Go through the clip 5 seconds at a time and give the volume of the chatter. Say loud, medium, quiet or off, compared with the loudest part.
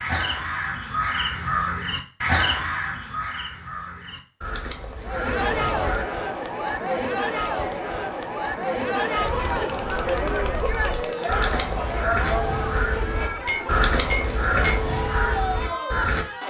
off, loud, loud, loud.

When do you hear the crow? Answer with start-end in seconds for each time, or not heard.
0.0-6.0, 9.8-16.2.